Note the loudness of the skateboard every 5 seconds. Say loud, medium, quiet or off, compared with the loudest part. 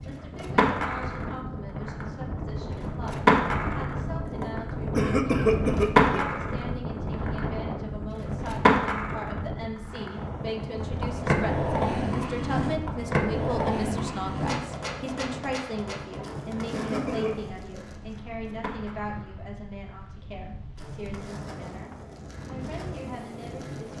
loud, loud, loud, quiet, quiet.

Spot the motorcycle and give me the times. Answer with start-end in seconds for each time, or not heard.
not heard.